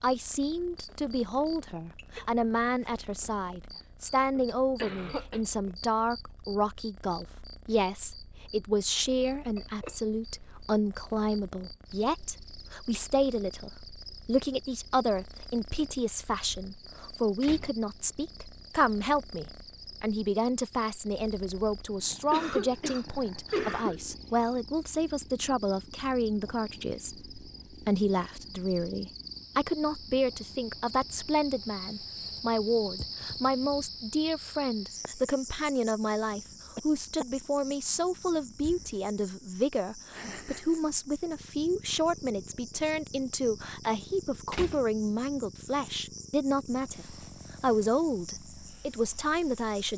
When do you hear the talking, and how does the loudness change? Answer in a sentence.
You can hear the talking from 0.0 to 49.9 s, at a steady volume.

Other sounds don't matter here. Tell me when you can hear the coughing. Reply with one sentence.
You can hear the coughing from 4.3 to 5.4 s, from 22.1 to 24.1 s and from 36.8 to 37.2 s.